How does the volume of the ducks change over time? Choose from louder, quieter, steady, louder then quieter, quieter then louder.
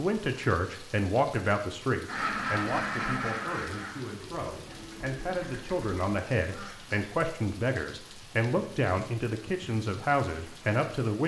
quieter.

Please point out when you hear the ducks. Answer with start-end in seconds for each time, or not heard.
2.0-7.0.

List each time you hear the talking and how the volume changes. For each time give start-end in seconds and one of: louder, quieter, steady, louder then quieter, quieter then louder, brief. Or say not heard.
0.0-11.2 quieter then louder.